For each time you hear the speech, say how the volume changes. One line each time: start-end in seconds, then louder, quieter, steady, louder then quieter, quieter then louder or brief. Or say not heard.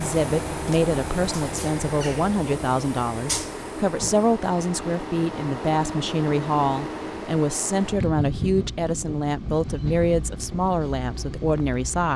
0.0-12.1 steady.